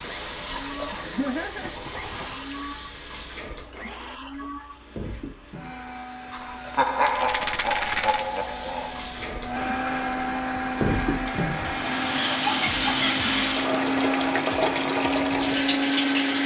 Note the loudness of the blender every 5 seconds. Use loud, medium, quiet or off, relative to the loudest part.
quiet, medium, loud, loud.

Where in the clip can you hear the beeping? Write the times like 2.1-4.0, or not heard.
not heard.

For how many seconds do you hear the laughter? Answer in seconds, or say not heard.
5 s.